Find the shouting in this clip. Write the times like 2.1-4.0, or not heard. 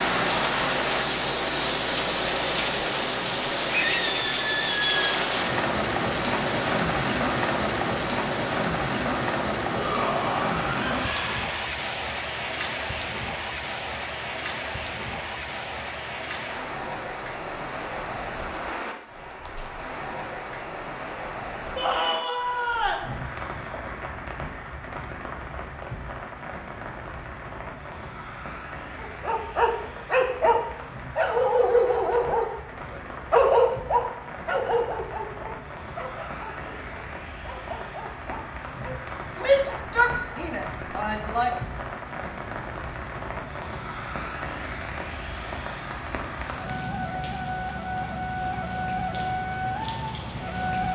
9.7-11.5, 21.8-23.1, 39.4-41.5.